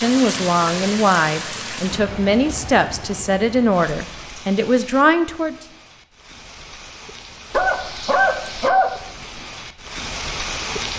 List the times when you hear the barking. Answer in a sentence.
The barking can be heard from 7.5 to 9.0 s.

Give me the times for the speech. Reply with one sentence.
The speech can be heard from 0.0 to 5.5 s.